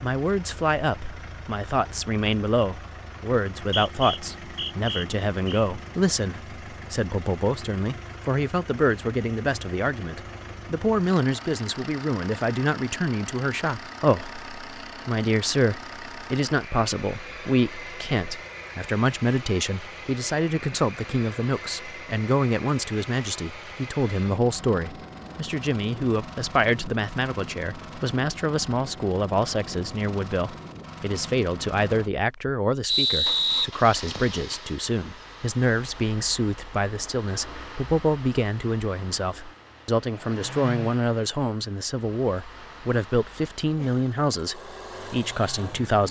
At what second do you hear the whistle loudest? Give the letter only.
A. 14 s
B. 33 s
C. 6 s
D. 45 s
B.